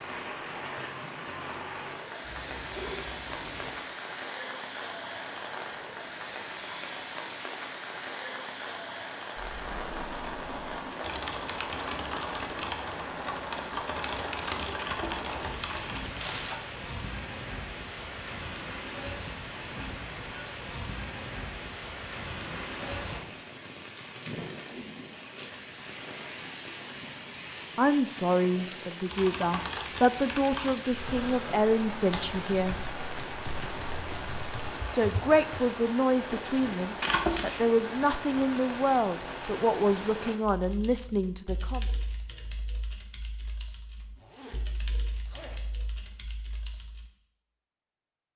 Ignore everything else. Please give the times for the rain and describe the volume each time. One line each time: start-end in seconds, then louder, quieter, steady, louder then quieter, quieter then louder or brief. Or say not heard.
0.0-40.4 steady.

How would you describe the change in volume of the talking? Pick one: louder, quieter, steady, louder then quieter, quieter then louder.
steady.